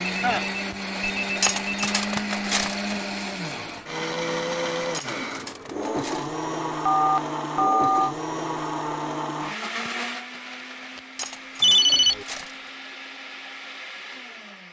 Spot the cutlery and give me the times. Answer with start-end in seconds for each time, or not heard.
1.4-3.0, 4.9-6.3, 11.2-12.7.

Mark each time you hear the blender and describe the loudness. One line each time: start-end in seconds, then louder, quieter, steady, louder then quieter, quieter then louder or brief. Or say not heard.
0.0-14.6 quieter.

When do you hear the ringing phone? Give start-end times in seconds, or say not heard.
0.0-1.9, 6.8-8.2, 11.6-12.2.